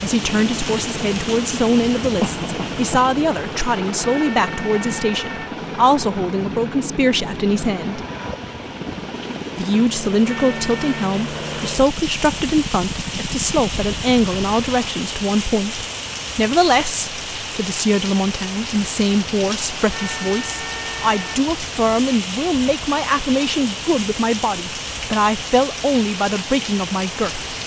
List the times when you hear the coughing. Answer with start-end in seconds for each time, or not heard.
2.2-3.0.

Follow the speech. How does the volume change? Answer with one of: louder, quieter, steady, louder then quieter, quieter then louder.
steady.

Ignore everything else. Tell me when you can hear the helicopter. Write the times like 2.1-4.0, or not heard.
0.0-14.9.